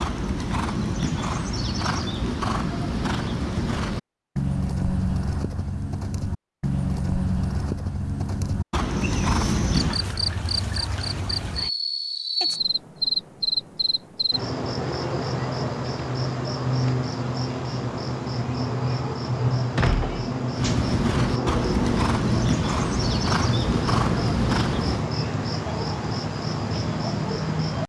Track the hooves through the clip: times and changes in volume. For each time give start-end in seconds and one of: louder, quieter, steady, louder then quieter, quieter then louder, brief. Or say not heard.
0.0-10.0 steady
20.6-25.1 steady.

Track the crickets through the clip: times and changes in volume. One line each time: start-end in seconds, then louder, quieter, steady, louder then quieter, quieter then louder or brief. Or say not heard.
8.9-27.8 steady.